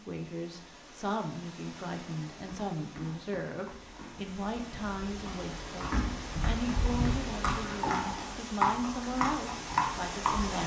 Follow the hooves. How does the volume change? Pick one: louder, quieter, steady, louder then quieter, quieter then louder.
louder.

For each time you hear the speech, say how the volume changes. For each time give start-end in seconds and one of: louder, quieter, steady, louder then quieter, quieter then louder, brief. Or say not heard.
0.0-10.6 steady.